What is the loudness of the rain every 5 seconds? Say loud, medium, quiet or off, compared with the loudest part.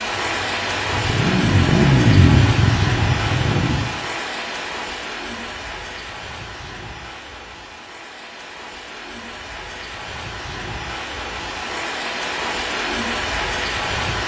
loud, medium, loud.